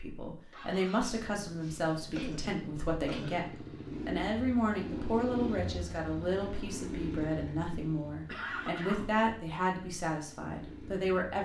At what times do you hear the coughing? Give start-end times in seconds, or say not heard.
1.6-3.4, 8.2-9.2.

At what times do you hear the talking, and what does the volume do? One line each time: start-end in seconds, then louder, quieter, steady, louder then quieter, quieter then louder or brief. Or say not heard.
0.0-11.4 steady.